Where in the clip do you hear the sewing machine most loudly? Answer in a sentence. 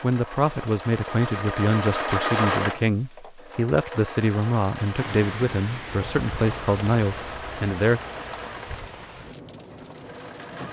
The volume of the sewing machine peaks at 2 seconds.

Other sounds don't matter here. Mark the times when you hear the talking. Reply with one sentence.
You can hear the talking from 0.0 to 8.0 s.